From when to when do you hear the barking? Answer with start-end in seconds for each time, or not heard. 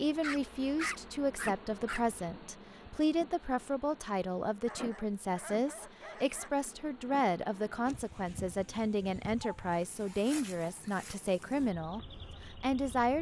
0.2-2.0, 4.7-6.7, 9.1-10.9.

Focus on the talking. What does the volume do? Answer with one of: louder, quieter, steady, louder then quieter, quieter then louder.
steady.